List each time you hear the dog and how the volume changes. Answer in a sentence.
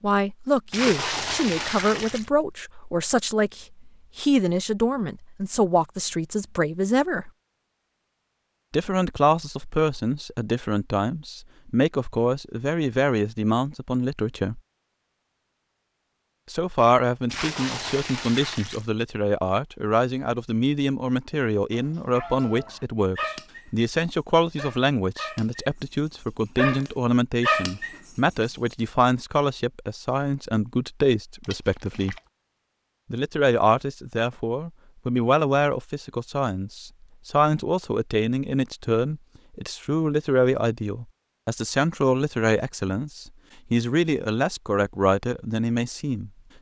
The dog can be heard from 22.1 to 28.8 s, getting quieter then louder.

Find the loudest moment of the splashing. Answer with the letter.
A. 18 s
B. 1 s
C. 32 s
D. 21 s
B.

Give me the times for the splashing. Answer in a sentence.
The splashing can be heard from 0.7 to 2.3 s, from 17.2 to 18.9 s and from 31.4 to 32.2 s.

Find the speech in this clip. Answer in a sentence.
You can hear the speech from 0.0 to 7.3 s, from 8.7 to 14.6 s, from 16.5 to 32.1 s and from 33.1 to 46.3 s.